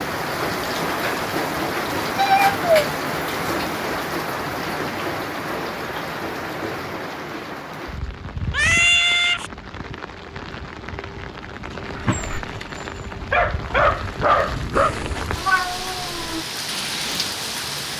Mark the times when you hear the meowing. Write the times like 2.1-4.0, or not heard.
2.1-2.7, 8.5-9.5, 14.8-16.4.